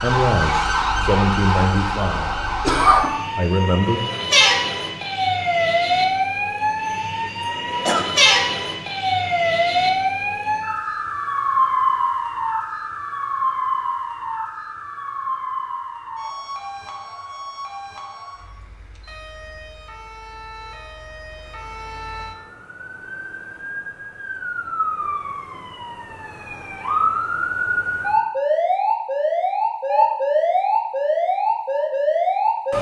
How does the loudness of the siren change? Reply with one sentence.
The volume of the siren goes down, then up.